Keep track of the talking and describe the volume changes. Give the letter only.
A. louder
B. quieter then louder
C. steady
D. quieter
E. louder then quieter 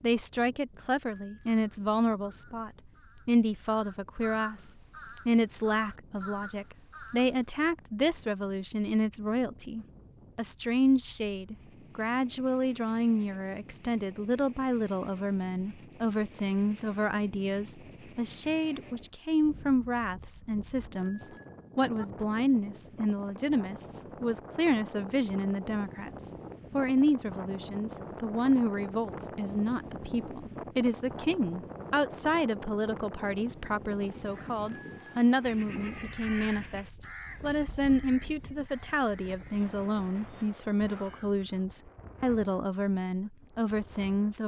C.